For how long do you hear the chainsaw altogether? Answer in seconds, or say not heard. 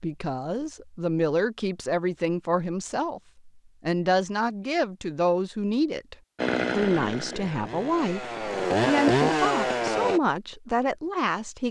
4 s.